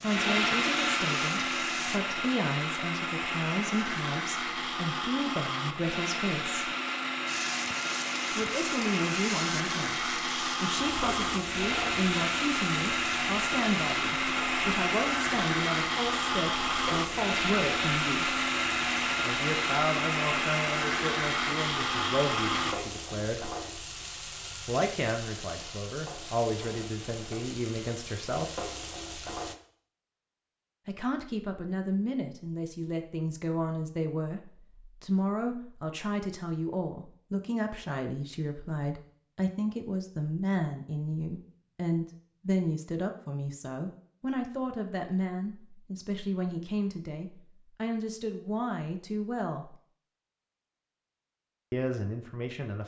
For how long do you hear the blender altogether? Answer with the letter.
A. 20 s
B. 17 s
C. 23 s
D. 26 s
C.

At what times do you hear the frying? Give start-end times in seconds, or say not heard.
0.0-2.0, 7.2-29.6.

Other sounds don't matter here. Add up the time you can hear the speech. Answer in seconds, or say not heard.
45 s.